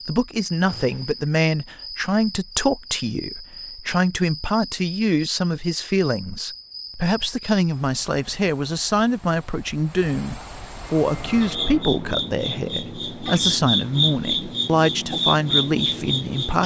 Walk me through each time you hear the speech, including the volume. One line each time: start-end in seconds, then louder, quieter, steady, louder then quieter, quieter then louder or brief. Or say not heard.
0.1-16.6 steady.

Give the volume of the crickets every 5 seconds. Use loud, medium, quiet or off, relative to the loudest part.
quiet, quiet, loud, loud.